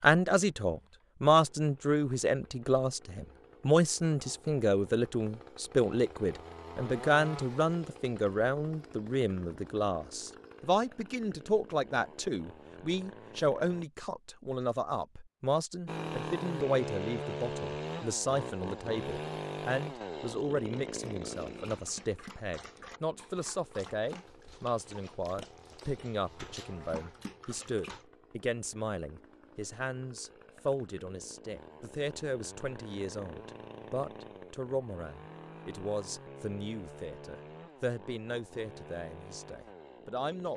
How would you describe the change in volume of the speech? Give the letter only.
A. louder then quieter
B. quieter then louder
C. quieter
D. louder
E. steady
C.